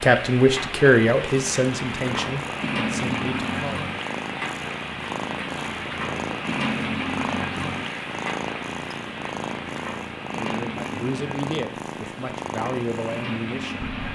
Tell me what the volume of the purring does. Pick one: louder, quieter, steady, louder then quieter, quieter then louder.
steady.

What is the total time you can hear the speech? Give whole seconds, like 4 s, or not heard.
7 s.